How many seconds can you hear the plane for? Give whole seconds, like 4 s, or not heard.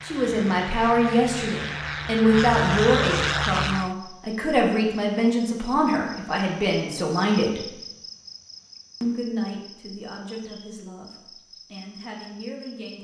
4 s.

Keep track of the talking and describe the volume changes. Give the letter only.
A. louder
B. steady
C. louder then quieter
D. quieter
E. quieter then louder
D.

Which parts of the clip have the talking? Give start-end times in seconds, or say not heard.
0.0-7.7, 9.0-12.9.